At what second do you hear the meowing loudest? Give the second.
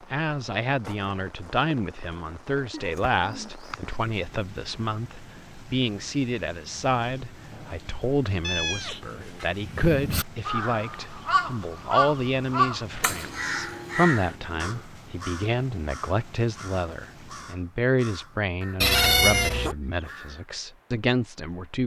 19 s.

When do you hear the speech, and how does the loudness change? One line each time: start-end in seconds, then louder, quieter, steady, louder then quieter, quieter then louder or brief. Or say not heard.
0.0-21.8 steady.